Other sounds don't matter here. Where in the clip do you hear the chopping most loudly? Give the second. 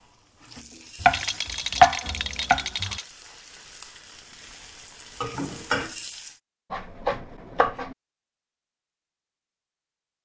2 s.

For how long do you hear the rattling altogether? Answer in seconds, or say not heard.
2 s.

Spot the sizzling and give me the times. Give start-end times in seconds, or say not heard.
0.0-6.4.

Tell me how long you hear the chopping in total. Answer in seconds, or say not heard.
3 s.